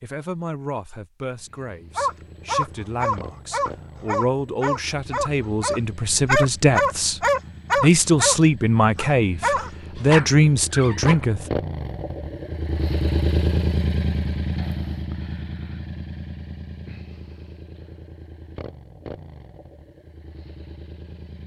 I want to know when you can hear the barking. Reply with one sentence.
The barking can be heard from 1.9 to 8.3 s and from 8.9 to 11.2 s.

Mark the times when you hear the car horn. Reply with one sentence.
The car horn can't be heard in this clip.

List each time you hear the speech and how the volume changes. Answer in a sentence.
You can hear the speech from 0.0 to 11.4 s, getting louder.